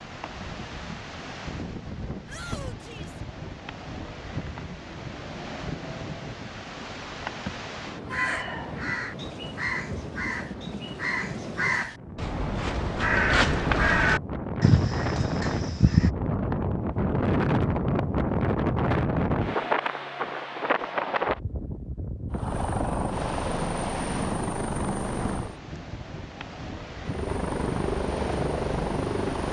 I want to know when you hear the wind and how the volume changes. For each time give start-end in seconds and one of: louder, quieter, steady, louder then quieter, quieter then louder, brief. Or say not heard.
0.0-29.4 louder then quieter.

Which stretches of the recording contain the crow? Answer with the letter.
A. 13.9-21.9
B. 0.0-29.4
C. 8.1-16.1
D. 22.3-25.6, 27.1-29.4
C.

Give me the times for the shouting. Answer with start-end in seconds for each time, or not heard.
2.2-3.2.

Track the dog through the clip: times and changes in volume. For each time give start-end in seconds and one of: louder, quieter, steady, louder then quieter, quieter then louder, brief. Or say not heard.
not heard.